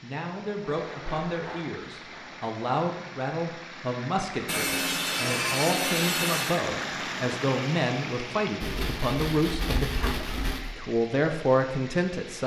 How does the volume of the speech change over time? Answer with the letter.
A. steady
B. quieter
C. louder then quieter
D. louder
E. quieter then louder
D.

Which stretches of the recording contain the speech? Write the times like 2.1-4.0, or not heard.
0.0-12.4.